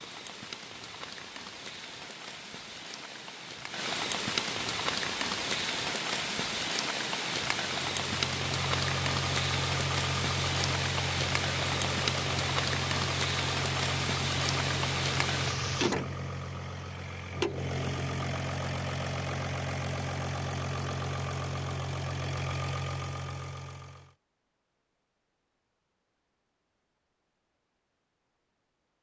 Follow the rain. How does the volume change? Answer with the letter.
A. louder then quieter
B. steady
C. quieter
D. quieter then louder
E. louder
E.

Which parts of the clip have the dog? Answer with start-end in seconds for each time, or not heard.
not heard.